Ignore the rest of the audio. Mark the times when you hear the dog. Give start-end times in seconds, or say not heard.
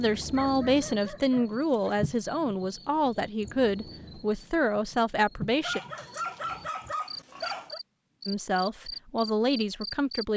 0.3-1.9, 5.6-7.8.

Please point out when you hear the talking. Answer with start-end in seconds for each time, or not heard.
0.0-5.8, 8.2-10.3.